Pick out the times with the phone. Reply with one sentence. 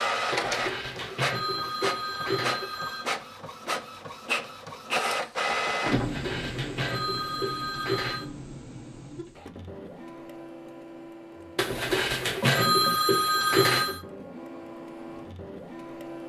You can hear the phone from 0.3 to 3.0 s, from 5.9 to 8.3 s and from 11.6 to 14.0 s.